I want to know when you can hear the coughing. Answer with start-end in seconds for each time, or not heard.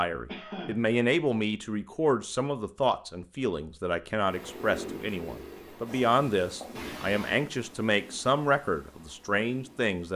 0.2-0.9, 6.8-7.5.